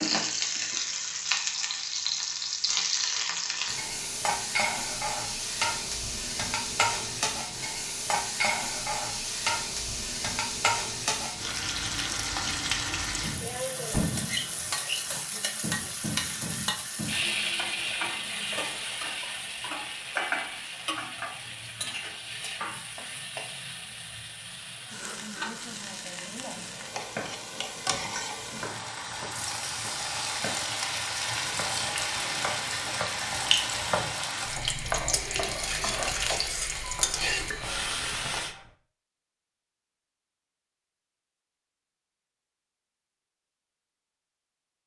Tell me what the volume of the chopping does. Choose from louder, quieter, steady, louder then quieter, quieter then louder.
louder then quieter.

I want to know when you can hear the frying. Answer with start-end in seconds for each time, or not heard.
0.0-38.5.